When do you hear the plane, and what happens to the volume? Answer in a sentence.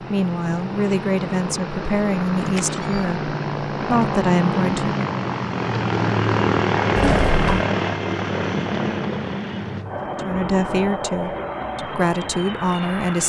You can hear the plane from 0.0 to 13.2 s, getting louder then quieter.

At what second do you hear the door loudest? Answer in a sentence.
The loudest moment of the door is at 7 seconds.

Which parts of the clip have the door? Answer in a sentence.
You can hear the door from 2.5 to 3.1 s and from 7.0 to 7.7 s.